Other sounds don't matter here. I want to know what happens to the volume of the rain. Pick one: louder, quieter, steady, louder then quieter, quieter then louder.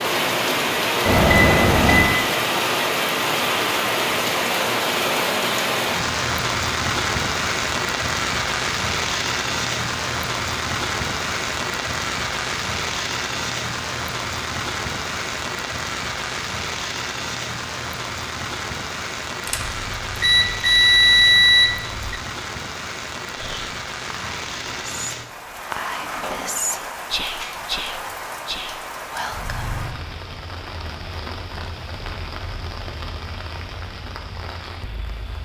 quieter.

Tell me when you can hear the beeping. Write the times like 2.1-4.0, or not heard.
1.1-2.2, 19.4-22.1.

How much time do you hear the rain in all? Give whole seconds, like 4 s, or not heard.
35 s.